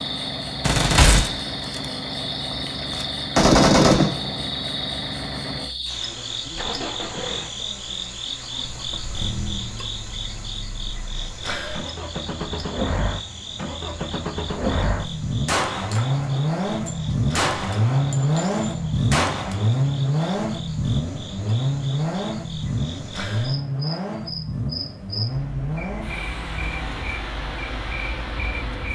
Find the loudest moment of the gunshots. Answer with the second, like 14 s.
4 s.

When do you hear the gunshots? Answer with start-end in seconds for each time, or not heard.
0.6-1.9, 2.5-4.5, 15.4-19.7.